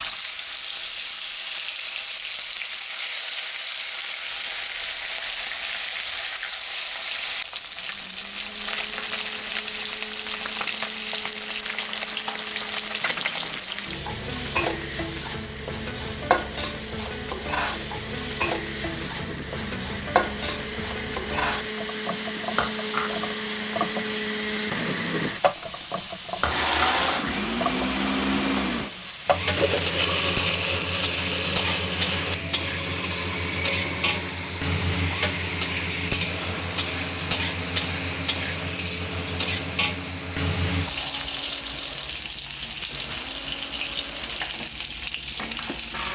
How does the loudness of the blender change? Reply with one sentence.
The loudness of the blender goes up, then down.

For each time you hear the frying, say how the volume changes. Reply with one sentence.
The frying can be heard from 0.0 to 46.1 s, at a steady volume.